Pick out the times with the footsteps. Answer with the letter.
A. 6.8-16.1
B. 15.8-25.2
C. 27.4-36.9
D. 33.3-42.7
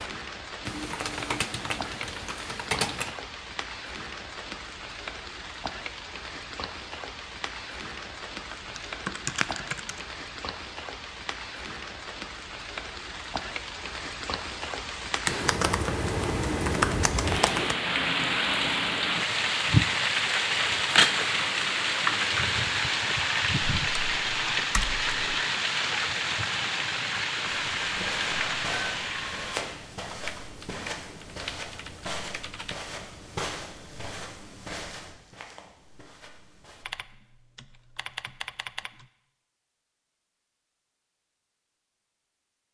C.